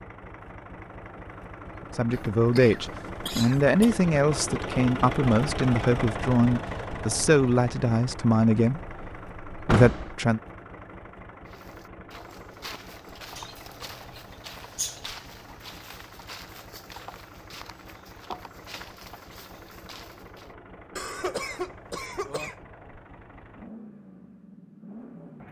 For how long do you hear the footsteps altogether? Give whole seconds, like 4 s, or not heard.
9 s.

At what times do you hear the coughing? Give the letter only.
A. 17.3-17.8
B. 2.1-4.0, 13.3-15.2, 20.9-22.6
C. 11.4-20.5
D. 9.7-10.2
B.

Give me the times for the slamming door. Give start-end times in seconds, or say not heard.
9.7-10.2.